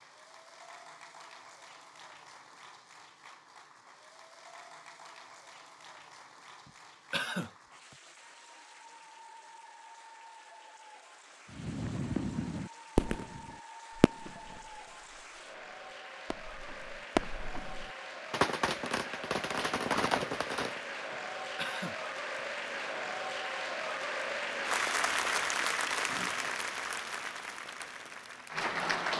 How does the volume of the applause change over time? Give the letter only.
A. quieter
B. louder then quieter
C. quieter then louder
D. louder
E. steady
D.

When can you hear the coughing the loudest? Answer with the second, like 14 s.
7 s.